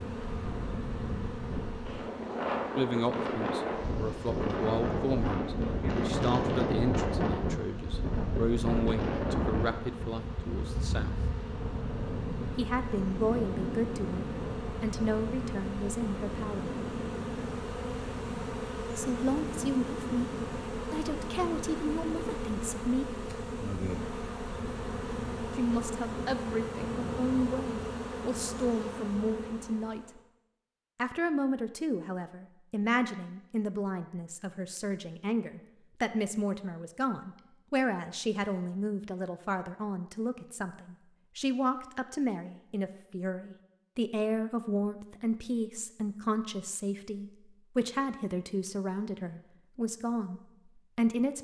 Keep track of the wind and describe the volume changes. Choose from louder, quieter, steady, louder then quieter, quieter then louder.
quieter.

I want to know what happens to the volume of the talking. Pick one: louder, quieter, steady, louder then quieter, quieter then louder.
steady.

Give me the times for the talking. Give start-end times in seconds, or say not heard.
2.8-11.2, 12.6-16.8, 18.9-23.2, 25.6-30.2, 30.9-51.3.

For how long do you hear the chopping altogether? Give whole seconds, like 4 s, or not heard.
not heard.